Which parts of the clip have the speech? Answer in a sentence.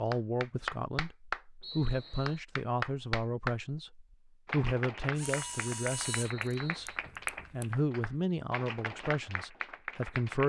You can hear the speech from 0.0 to 6.9 s and from 7.5 to 10.4 s.